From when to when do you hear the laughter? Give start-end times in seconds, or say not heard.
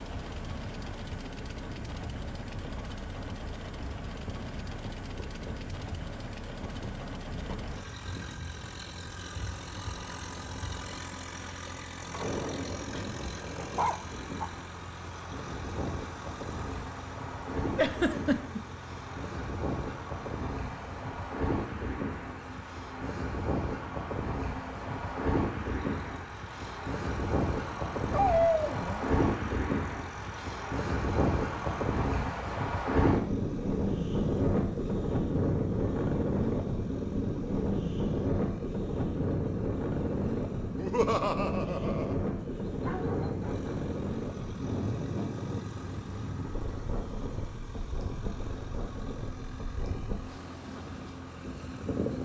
17.8-18.6, 40.8-42.1.